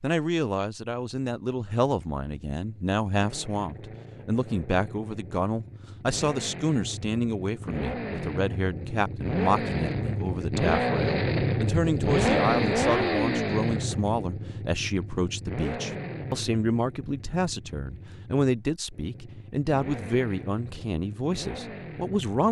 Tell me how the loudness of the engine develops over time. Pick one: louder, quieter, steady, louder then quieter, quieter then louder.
louder then quieter.